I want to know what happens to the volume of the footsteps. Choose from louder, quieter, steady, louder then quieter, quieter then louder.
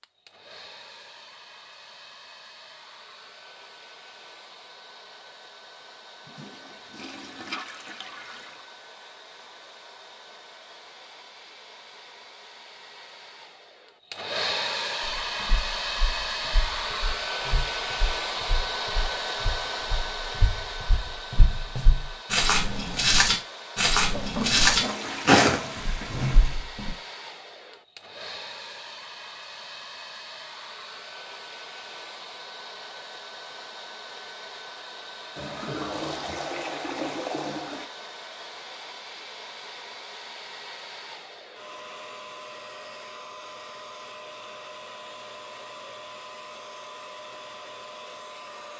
louder.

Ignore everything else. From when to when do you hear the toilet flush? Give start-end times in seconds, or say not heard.
6.2-8.7, 24.1-26.6, 35.4-37.9.